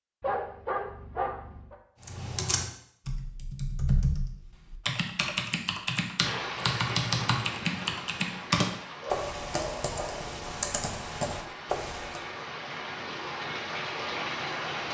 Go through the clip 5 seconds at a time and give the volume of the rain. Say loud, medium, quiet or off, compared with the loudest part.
off, loud, loud.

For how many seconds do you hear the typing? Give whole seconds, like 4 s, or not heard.
10 s.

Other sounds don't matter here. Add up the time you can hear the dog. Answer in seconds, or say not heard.
3 s.